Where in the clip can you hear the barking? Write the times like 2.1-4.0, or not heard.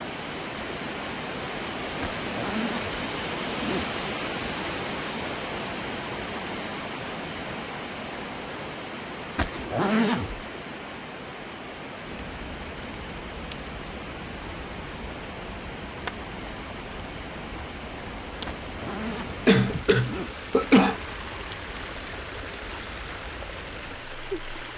not heard.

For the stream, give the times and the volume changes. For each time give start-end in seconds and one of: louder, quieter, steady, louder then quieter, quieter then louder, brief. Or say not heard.
0.0-24.7 quieter.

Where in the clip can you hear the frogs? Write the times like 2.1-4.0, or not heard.
not heard.